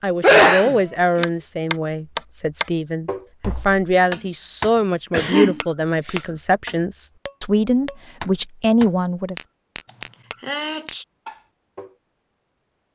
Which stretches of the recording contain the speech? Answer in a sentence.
The speech can be heard from 0.0 to 9.3 s.